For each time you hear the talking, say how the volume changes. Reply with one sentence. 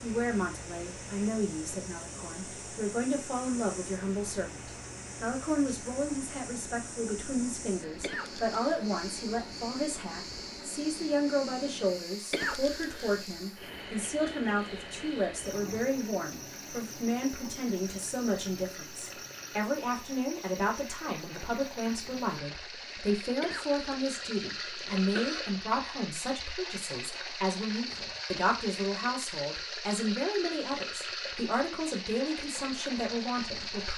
You can hear the talking from 0.0 to 33.9 s, at a steady volume.